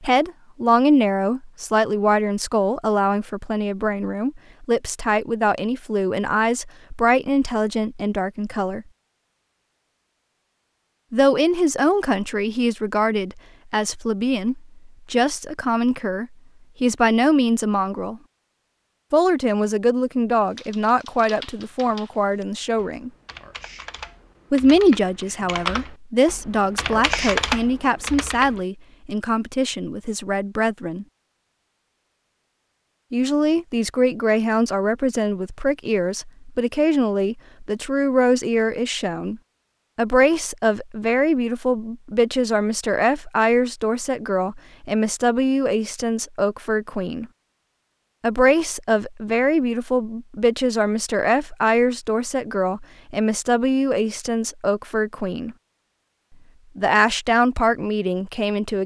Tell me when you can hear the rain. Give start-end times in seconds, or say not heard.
not heard.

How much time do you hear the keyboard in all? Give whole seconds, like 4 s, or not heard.
8 s.